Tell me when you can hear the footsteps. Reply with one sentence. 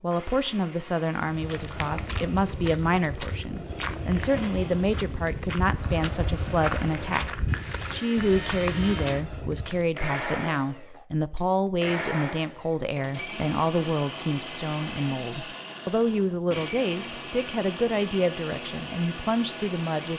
You can hear the footsteps from 1.2 to 9.9 s.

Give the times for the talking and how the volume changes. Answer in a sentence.
The talking can be heard from 0.0 to 20.1 s, at a steady volume.